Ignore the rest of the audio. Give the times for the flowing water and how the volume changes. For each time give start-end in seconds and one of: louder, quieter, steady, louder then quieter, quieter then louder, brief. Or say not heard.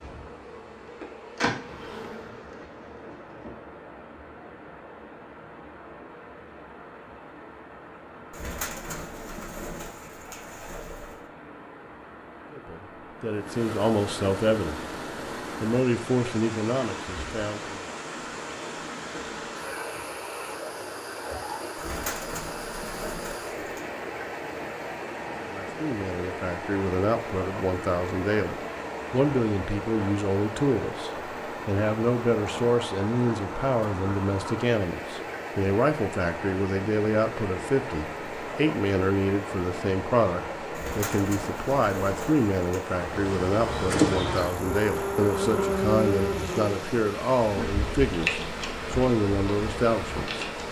0.0-50.6 louder.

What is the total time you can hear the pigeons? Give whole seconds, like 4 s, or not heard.
7 s.